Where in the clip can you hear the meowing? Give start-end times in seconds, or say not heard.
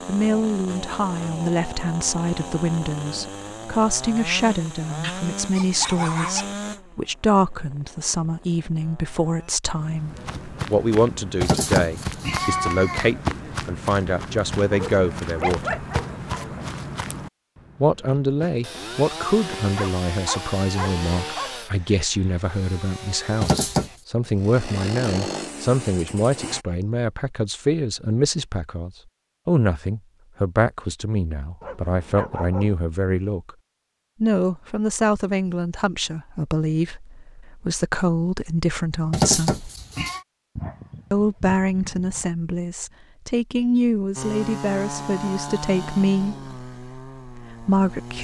11.4-13.1, 23.4-23.9, 39.1-40.2.